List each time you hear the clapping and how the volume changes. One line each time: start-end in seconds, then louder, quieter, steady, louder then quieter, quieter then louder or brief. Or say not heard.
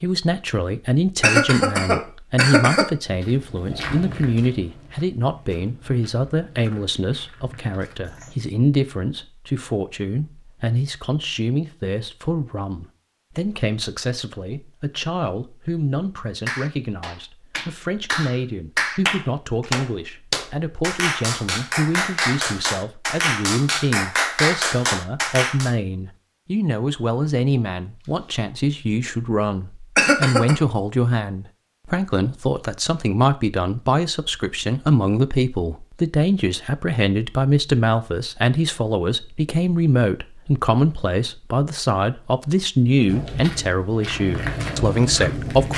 16.4-25.7 louder.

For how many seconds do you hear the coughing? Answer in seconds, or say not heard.
2 s.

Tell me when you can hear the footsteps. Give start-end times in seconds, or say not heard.
3.0-8.3, 43.0-45.7.